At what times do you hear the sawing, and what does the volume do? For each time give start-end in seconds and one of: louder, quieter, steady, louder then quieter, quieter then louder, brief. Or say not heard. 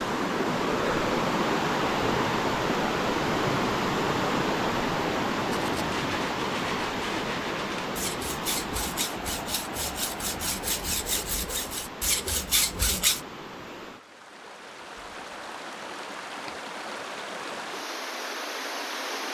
5.5-13.2 louder.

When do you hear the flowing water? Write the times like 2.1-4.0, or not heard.
0.0-19.2.